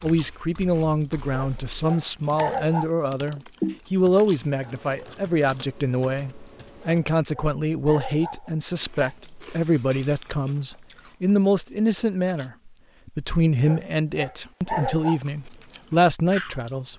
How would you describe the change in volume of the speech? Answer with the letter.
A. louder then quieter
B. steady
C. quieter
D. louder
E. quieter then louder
B.